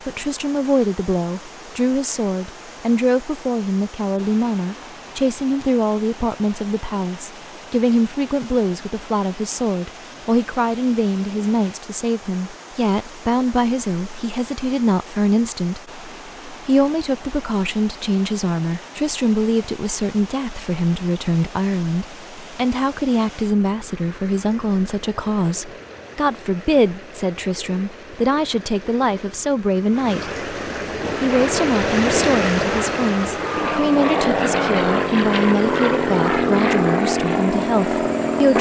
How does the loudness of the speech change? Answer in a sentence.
The volume of the speech stays about the same.